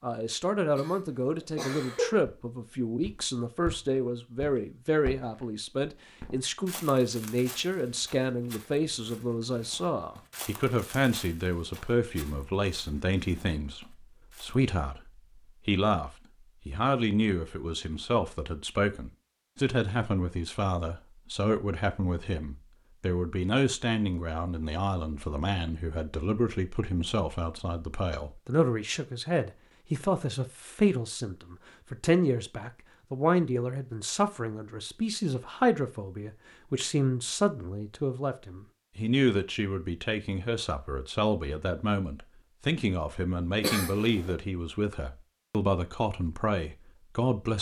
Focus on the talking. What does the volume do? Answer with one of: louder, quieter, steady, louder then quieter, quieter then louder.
steady.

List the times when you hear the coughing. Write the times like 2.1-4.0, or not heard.
0.8-2.1, 43.6-44.4.